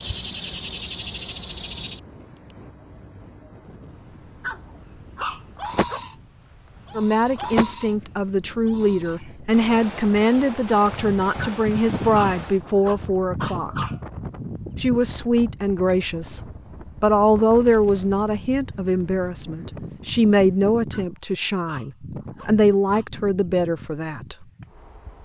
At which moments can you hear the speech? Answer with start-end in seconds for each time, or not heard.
7.0-13.8, 14.8-16.4, 17.0-24.4.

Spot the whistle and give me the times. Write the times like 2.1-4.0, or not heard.
not heard.